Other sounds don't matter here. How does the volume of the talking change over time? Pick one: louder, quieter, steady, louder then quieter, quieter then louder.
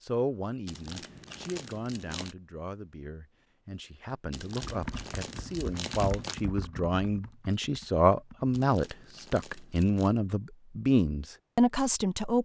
louder.